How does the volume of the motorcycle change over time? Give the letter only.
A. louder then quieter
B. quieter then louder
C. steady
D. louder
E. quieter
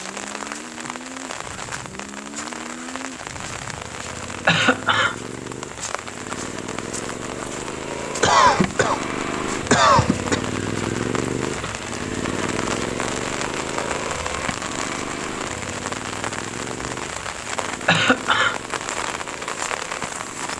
A.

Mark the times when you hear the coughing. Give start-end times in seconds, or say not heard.
4.5-5.2, 8.2-10.4, 17.9-18.6.